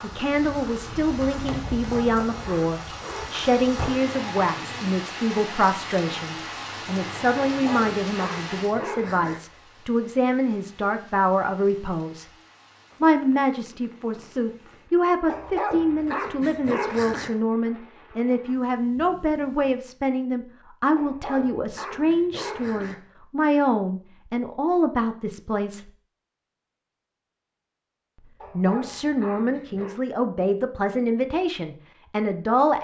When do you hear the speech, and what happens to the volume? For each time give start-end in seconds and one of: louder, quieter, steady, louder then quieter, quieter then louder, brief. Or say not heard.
0.0-12.2 steady
13.0-25.9 steady
28.5-32.7 steady.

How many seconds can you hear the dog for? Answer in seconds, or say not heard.
9 s.